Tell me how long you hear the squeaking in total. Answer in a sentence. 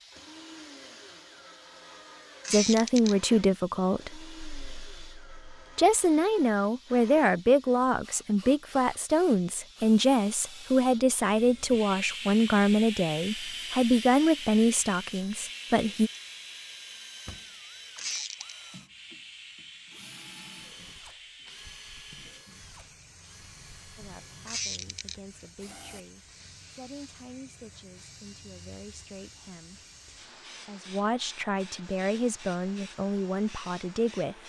You can hear the squeaking for 2 seconds altogether.